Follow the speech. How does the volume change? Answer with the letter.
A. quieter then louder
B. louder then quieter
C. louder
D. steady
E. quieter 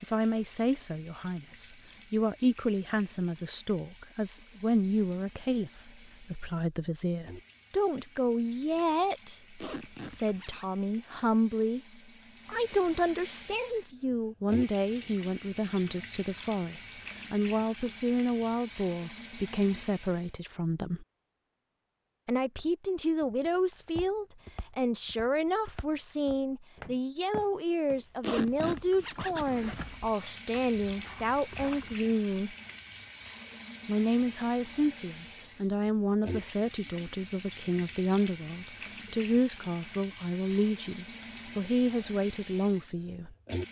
D.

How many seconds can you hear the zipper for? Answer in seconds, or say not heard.
3 s.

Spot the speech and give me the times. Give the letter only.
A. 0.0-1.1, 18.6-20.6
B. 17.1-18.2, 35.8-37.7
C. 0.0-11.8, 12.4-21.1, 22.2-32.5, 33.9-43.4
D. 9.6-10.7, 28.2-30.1
C.